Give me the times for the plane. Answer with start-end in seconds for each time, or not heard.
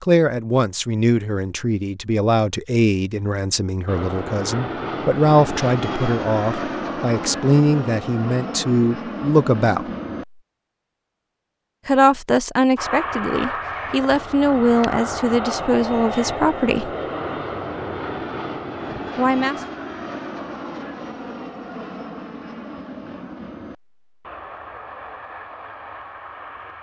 3.9-10.4, 12.8-26.7.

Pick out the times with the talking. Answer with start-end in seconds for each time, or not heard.
0.0-9.9, 11.8-16.9, 19.1-19.6.